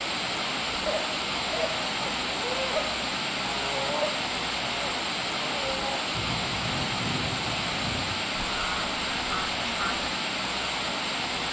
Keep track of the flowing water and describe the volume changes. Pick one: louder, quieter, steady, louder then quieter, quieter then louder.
steady.